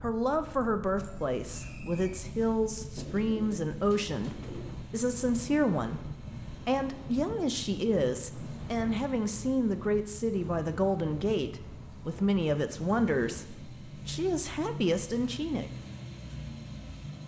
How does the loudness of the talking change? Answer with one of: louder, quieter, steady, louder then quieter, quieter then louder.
steady.